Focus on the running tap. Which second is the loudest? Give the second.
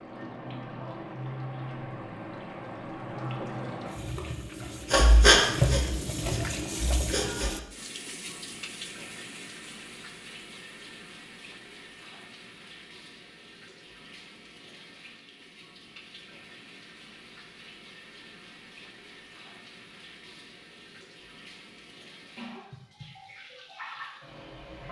6 s.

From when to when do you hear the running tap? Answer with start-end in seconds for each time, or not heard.
0.0-24.8.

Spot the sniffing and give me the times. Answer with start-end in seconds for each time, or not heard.
4.8-7.5.